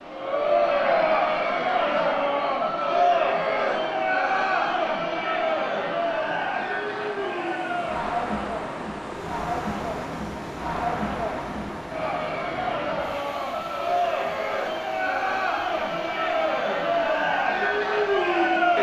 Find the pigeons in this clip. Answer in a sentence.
The pigeons can't be heard in this clip.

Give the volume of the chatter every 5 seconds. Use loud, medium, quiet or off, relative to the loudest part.
loud, medium, medium, loud.